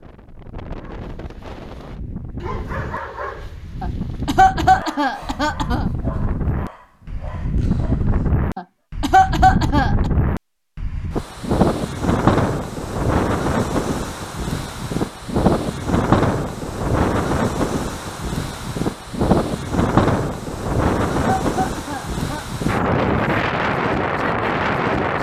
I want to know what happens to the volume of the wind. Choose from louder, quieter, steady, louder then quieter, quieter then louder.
louder.